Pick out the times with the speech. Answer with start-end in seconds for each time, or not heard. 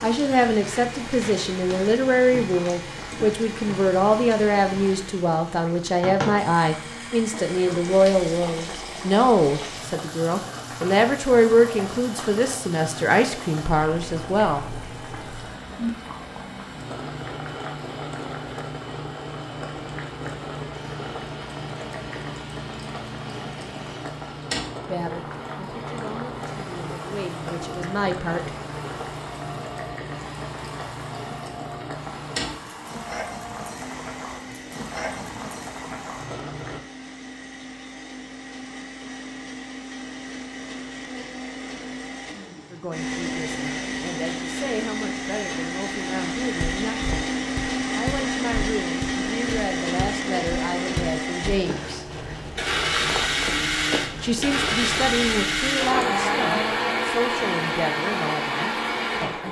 0.0-14.7, 24.9-28.5, 42.7-47.2, 48.0-52.1, 54.2-59.4.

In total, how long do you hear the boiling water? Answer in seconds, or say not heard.
37 s.